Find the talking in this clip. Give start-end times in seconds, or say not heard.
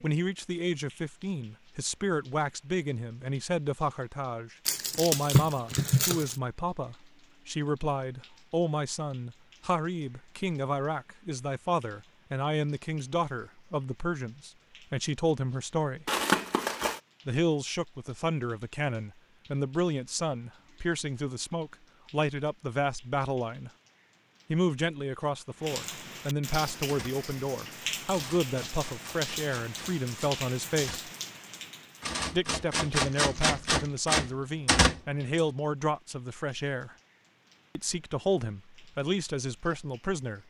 0.0-16.1, 17.2-23.7, 24.5-31.1, 32.3-37.0, 37.8-40.4.